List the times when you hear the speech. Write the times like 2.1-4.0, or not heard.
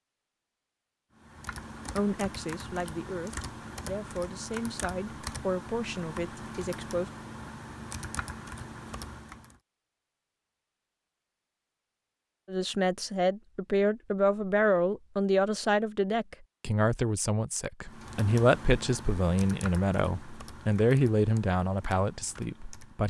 1.9-7.1, 12.4-23.0.